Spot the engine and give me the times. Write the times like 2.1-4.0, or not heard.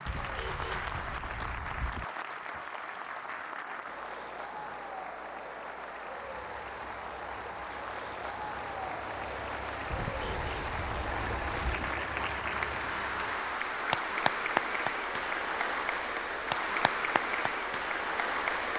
6.1-13.6.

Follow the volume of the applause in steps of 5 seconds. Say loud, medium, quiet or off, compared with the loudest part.
medium, medium, loud, loud.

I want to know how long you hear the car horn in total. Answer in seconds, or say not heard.
4 s.